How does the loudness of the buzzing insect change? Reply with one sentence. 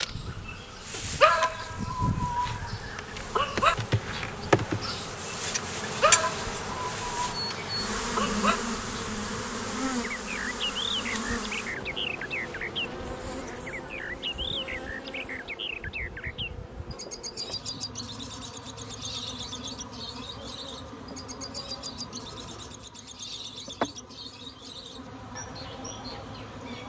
The loudness of the buzzing insect goes down.